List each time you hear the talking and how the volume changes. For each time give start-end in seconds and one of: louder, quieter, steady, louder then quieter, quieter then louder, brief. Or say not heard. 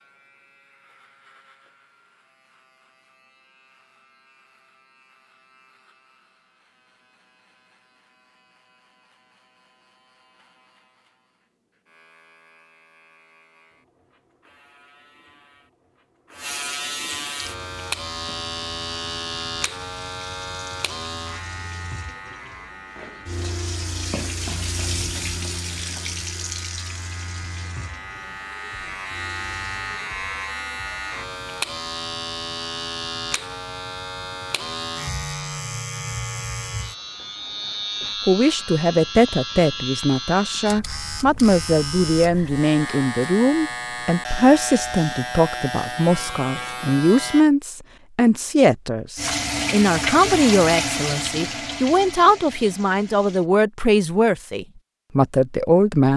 38.2-56.1 steady.